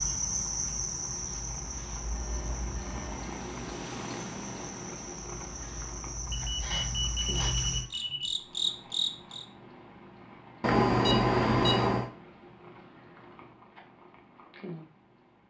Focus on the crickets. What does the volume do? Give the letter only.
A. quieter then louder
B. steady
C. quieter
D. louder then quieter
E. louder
A.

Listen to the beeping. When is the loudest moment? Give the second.
11 s.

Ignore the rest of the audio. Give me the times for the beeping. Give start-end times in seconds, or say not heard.
2.0-3.2, 6.3-8.3, 10.6-12.1.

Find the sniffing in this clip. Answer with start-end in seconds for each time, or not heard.
6.6-7.5.